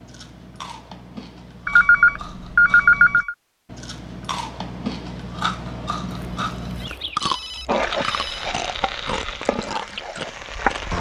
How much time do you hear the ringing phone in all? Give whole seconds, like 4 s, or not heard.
4 s.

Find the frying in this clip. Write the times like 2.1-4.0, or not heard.
7.7-10.9.